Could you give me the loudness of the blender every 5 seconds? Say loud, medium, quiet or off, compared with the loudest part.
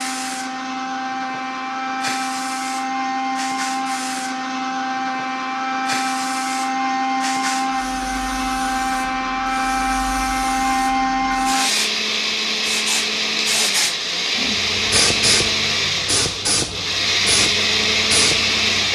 medium, loud, loud, loud.